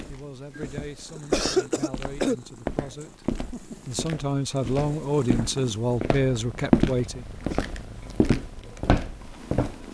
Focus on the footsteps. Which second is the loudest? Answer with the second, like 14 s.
7 s.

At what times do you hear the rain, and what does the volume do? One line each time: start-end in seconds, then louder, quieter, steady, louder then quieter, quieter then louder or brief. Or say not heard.
not heard.